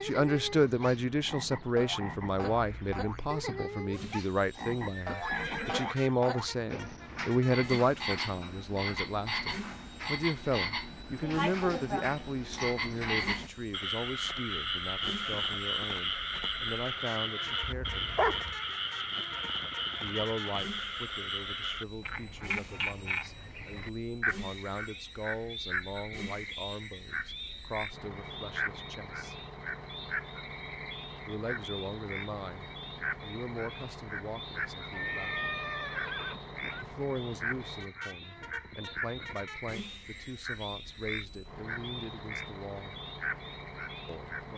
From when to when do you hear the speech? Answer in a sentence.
You can hear the speech from 0.0 to 18.2 s, from 20.0 to 29.4 s, from 31.2 to 35.4 s, from 36.8 to 43.0 s and from 44.0 to 44.5 s.